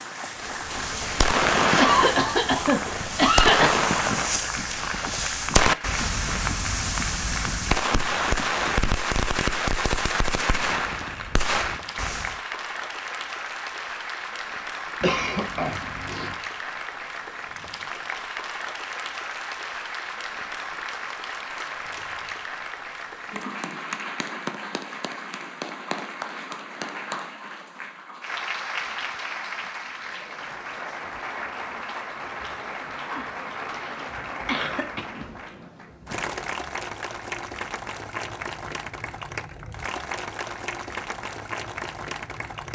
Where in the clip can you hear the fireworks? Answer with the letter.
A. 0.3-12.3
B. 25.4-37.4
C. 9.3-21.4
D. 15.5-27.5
A.